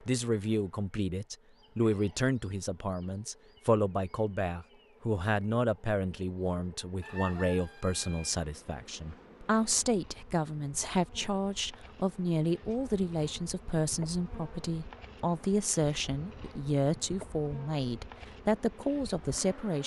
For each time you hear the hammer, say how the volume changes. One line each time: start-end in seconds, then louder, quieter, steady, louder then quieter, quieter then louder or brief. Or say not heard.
not heard.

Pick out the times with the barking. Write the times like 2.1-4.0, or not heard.
not heard.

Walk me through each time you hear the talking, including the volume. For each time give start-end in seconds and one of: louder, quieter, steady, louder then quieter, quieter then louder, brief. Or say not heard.
0.1-19.8 steady.